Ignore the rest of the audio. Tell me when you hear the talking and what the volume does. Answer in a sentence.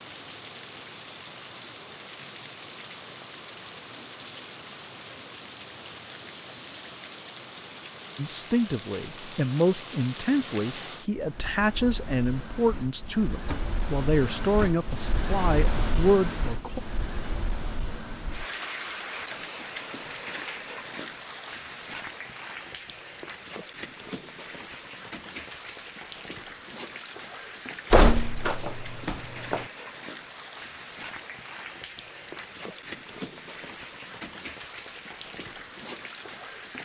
The talking can be heard from 8.2 to 16.8 s, at a steady volume.